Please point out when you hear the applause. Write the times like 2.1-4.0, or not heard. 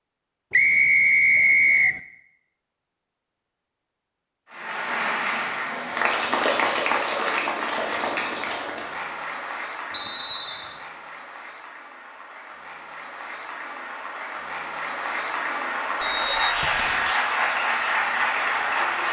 4.5-19.0.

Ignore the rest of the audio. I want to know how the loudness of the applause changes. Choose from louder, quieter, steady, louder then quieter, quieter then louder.
quieter then louder.